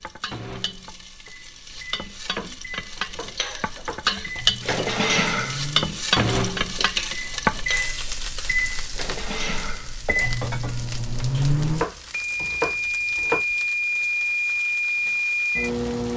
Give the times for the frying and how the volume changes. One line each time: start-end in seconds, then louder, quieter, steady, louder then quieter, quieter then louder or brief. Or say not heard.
0.0-16.1 louder then quieter.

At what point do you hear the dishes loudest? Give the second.
5 s.